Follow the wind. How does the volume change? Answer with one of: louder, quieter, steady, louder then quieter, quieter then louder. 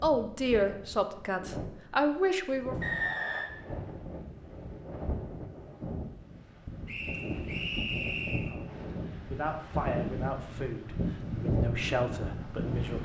louder.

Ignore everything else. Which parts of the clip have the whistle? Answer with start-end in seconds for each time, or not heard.
2.8-3.5, 6.8-8.5.